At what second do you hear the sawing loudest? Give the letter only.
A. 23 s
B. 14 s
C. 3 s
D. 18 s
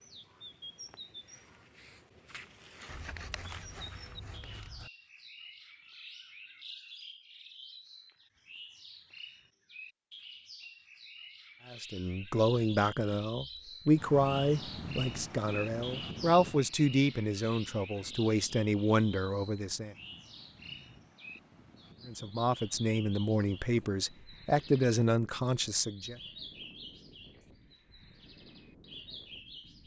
C.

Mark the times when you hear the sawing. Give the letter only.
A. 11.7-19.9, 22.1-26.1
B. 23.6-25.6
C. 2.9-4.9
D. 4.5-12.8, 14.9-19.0
C.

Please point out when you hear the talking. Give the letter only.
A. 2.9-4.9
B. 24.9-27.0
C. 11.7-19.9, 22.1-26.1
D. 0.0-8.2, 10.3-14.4
C.